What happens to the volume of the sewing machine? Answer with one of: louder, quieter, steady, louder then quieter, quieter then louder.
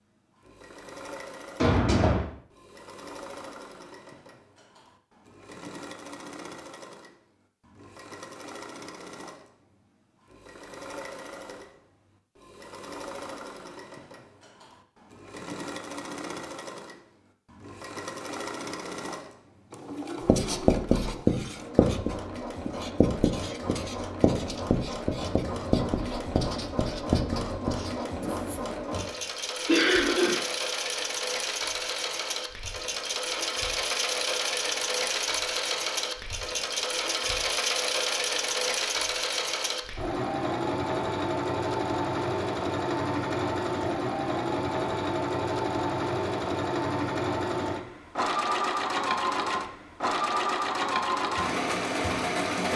louder.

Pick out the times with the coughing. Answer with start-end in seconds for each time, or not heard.
1.6-2.2, 29.6-30.4.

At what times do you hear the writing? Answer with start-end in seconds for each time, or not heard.
20.2-28.8.